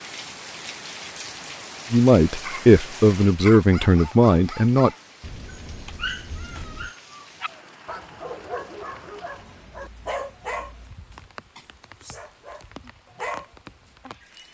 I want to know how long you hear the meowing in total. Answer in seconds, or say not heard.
2 s.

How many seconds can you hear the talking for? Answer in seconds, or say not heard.
3 s.